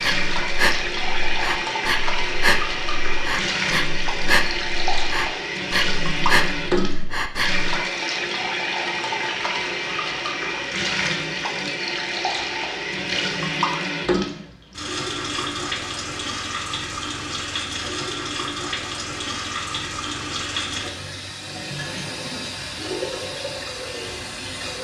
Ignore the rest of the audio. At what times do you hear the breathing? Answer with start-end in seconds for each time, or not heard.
0.0-7.7.